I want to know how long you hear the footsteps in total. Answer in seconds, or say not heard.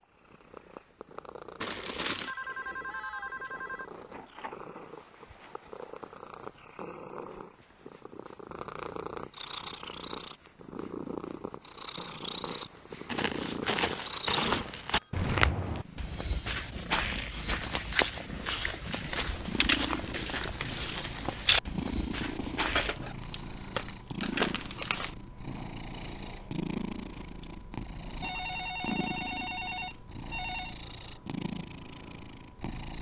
10 s.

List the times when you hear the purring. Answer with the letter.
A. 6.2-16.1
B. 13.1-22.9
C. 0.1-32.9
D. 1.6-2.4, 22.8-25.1
C.